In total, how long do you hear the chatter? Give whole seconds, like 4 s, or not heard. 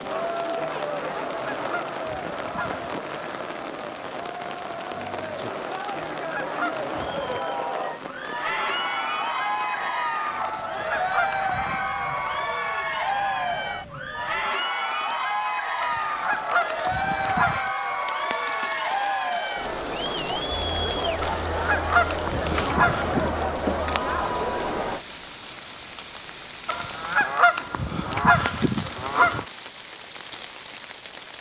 25 s.